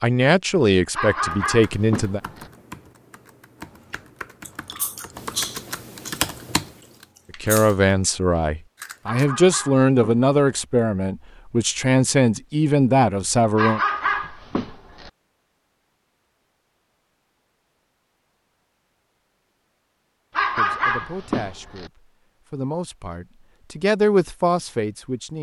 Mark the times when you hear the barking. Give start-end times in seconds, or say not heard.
0.9-2.5, 9.1-10.6, 13.6-15.1, 20.4-21.9.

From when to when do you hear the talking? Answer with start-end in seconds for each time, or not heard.
0.0-2.2, 7.4-13.8, 20.6-25.3.